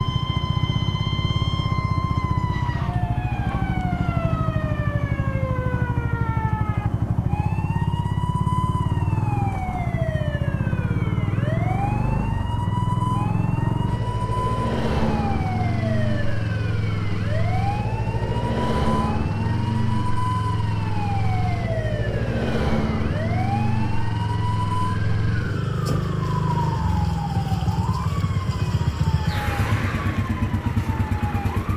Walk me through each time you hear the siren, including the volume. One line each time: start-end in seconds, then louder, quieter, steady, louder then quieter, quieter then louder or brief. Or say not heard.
0.0-31.7 steady.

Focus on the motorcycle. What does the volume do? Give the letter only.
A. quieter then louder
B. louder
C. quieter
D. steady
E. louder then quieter
D.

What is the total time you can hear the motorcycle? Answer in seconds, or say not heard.
32 s.